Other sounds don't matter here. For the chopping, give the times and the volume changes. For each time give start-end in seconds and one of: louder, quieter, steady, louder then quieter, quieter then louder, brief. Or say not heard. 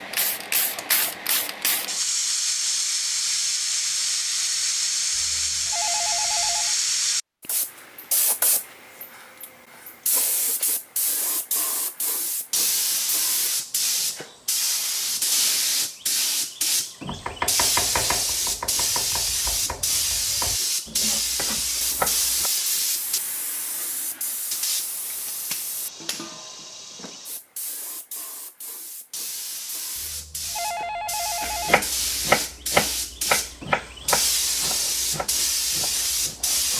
17.1-22.5 quieter then louder
31.4-36.7 quieter.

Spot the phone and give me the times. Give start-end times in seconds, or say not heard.
5.1-6.8, 29.9-31.9.